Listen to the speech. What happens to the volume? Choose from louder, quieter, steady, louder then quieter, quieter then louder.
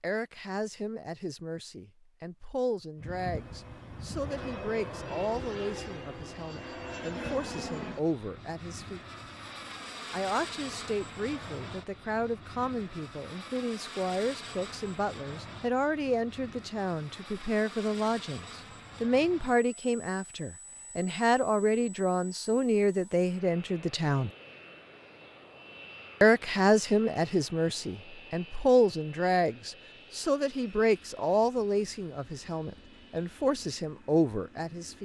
louder.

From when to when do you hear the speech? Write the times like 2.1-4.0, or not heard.
0.0-9.0, 10.1-24.3, 26.2-35.0.